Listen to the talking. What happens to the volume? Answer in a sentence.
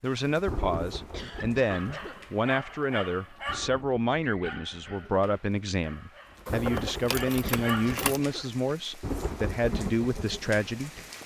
The loudness of the talking stays about the same.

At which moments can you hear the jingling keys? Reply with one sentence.
You can hear the jingling keys from 6.5 to 8.2 s.